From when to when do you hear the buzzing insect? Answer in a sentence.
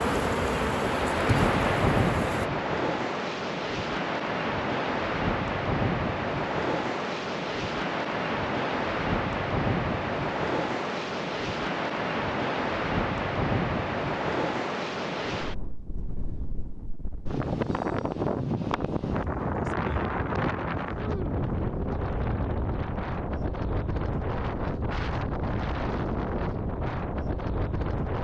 You can hear the buzzing insect from 0.0 to 2.5 s.